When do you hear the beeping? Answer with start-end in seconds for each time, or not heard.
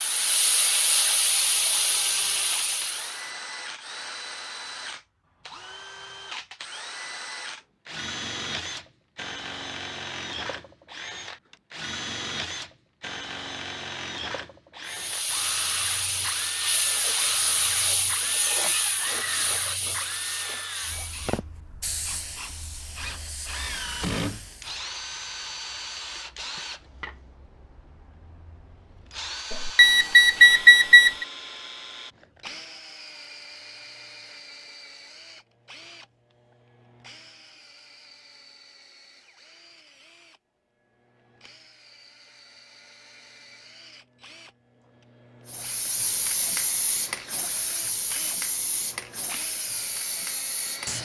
29.5-31.2.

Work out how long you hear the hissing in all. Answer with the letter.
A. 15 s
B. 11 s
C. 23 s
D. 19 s
D.